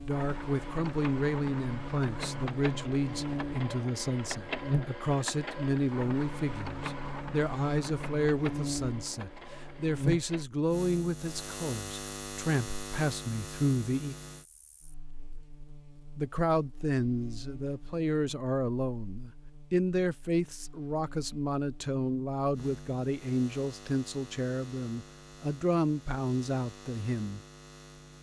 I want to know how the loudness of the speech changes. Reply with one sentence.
The volume of the speech stays about the same.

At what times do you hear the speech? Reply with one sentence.
You can hear the speech from 0.1 to 14.2 s and from 16.1 to 27.4 s.